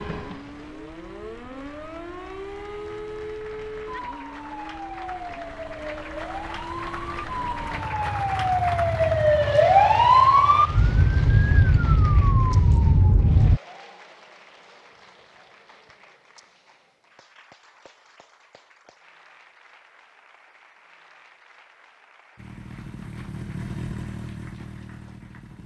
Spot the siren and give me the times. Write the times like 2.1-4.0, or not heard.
0.0-13.6.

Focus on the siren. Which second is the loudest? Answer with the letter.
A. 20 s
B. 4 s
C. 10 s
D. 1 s
C.